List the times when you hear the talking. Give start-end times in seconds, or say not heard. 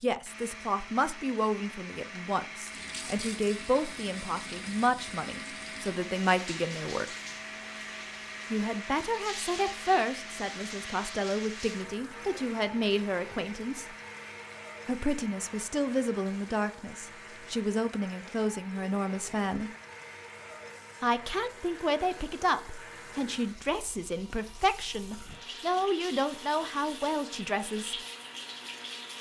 0.0-7.0, 8.5-13.8, 14.8-19.7, 21.0-27.9.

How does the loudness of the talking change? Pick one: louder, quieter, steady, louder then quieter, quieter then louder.
steady.